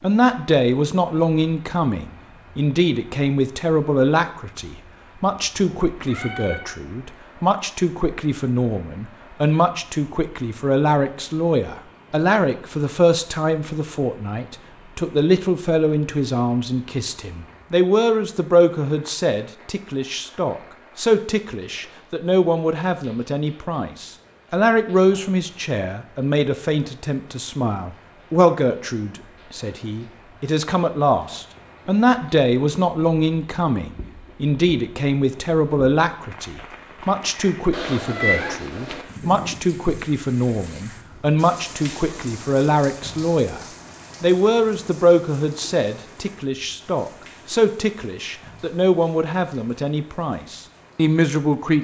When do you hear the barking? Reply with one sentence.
The barking can't be heard in this clip.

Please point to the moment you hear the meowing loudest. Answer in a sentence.
The loudest moment of the meowing is at 38 seconds.